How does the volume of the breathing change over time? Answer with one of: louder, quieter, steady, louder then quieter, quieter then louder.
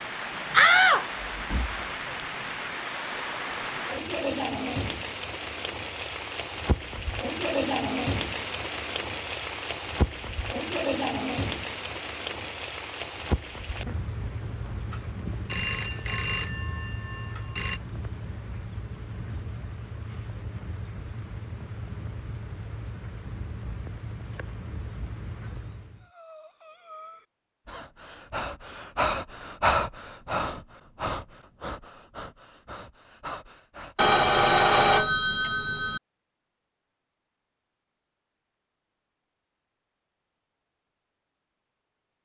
louder then quieter.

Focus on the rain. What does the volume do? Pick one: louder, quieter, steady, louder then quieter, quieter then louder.
quieter.